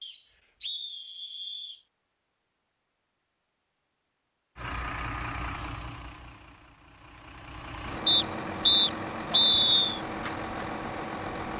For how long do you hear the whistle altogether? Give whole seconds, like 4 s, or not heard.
4 s.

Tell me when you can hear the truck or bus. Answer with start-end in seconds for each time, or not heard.
4.5-11.5.